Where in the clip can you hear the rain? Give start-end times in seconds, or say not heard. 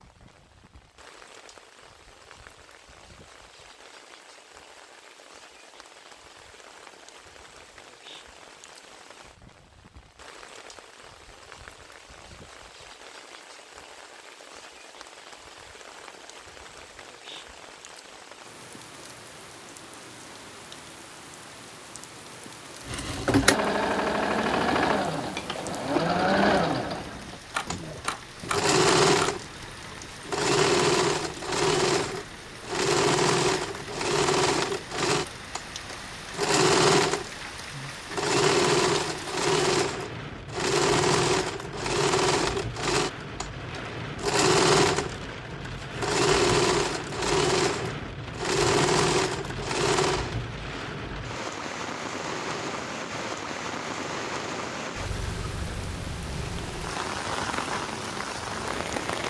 0.0-59.2.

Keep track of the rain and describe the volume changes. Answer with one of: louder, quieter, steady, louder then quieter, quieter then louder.
louder.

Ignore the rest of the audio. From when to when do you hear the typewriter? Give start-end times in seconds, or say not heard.
27.5-29.4.